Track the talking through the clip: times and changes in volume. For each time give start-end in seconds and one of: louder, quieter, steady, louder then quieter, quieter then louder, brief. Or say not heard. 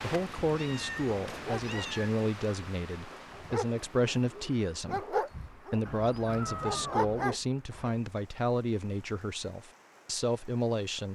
0.0-11.1 steady.